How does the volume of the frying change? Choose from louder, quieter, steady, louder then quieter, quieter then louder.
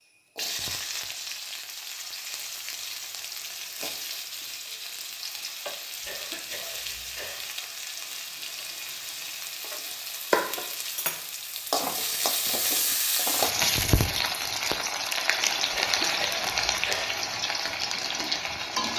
louder.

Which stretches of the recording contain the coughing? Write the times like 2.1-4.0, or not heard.
6.0-7.5, 15.7-17.1.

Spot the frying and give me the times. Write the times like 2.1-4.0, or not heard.
0.3-18.9.